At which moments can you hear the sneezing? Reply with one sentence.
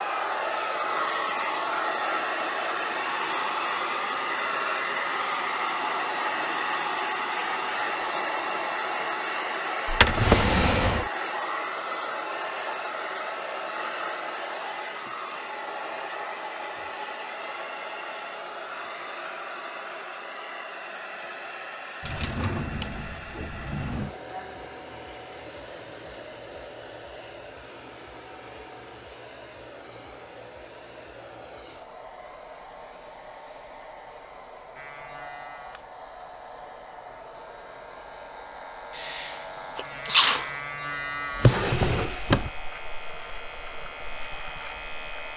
The sneezing can be heard from 39.0 to 40.5 s.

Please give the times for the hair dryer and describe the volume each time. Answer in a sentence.
You can hear the hair dryer from 0.0 to 45.3 s, getting quieter.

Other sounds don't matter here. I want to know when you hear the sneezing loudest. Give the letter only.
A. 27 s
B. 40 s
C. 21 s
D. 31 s
B.